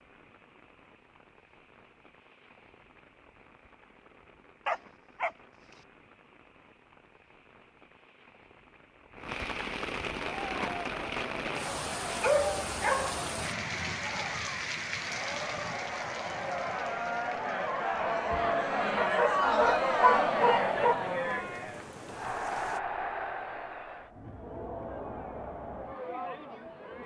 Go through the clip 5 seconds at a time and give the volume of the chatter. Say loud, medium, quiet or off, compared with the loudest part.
off, off, medium, loud, loud, medium.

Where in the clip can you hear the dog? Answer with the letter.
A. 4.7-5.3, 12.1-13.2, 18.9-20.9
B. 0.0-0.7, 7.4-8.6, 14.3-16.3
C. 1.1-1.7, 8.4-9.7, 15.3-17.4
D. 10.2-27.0
A.